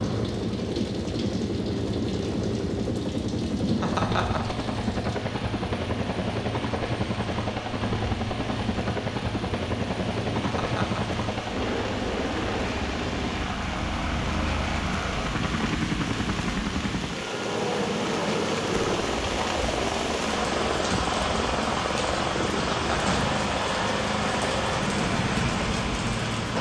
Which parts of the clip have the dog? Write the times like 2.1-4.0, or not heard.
not heard.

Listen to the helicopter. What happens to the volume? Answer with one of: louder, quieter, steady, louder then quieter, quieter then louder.
steady.